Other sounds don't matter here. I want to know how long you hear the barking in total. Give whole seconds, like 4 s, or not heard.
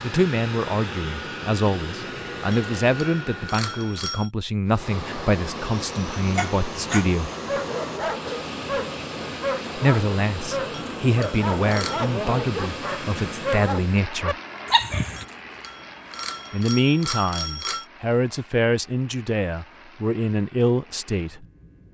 9 s.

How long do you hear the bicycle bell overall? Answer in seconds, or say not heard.
6 s.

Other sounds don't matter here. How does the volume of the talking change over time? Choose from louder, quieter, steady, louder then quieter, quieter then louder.
steady.